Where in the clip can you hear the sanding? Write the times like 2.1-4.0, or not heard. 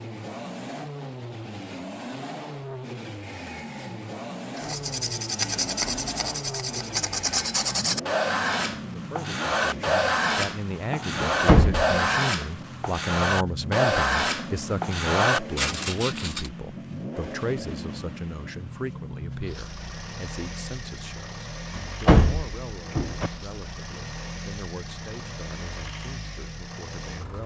4.5-16.5.